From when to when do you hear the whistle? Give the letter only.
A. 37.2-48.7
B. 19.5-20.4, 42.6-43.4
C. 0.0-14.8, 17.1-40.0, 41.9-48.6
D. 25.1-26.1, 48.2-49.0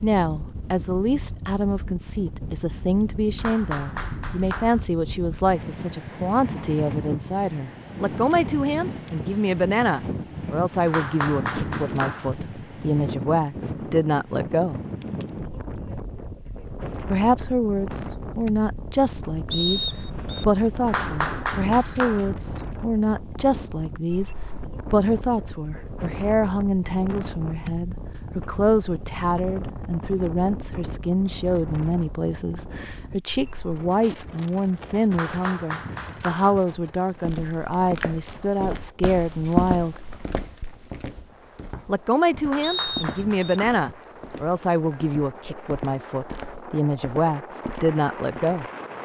B.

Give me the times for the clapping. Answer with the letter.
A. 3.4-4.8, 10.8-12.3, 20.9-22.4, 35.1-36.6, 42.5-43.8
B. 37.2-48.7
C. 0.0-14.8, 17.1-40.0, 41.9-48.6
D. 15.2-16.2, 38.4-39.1
A.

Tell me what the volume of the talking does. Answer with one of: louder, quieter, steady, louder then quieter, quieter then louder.
steady.